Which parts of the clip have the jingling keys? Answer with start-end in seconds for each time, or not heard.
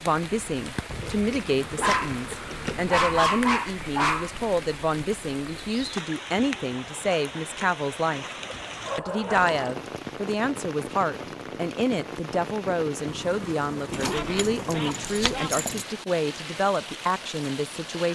0.8-3.2, 8.6-9.6, 13.9-15.8.